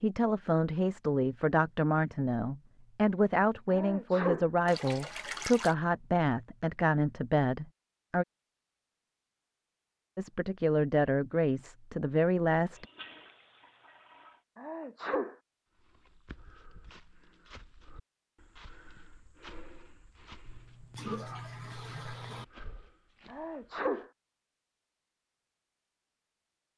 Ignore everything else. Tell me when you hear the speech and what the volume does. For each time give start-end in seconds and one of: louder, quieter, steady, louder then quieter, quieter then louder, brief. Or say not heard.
0.0-8.2 steady
10.2-12.8 brief.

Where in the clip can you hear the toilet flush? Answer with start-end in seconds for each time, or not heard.
4.7-5.8, 12.8-14.4, 20.4-22.4.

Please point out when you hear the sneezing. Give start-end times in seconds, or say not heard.
3.7-4.5, 14.6-15.3, 23.2-24.1.